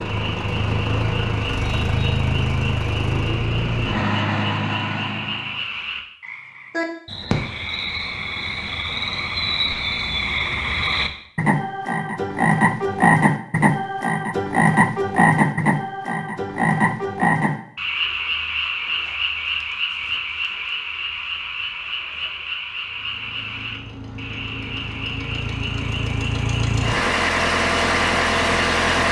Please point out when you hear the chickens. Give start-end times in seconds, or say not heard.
not heard.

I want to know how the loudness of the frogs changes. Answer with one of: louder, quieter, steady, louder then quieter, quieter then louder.
louder then quieter.